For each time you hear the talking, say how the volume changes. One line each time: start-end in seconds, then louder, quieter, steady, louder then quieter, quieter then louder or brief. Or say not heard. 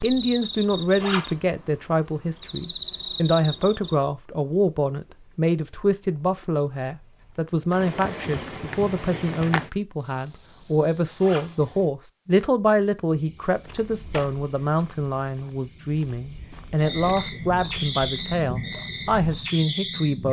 0.0-20.2 steady.